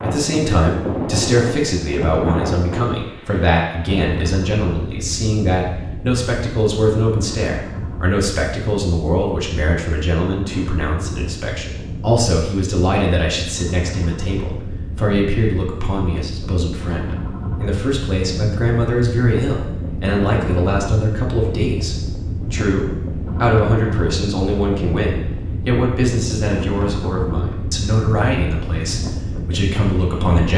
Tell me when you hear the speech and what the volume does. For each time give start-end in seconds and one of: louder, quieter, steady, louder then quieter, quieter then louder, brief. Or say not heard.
0.0-30.5 steady.